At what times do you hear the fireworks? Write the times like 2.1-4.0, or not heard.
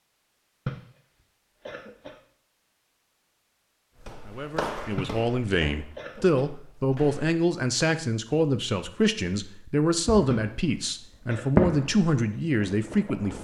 10.1-10.8, 11.6-13.3.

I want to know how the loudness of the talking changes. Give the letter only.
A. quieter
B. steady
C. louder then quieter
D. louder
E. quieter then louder
B.